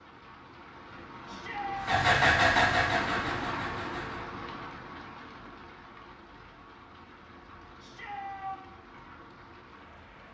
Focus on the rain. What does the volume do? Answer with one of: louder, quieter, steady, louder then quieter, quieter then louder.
louder then quieter.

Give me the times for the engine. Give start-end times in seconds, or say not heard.
1.8-4.2.